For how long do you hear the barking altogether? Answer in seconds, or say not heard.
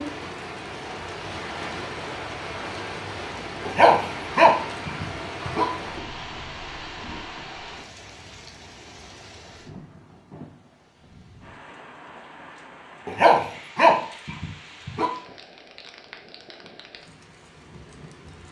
4 s.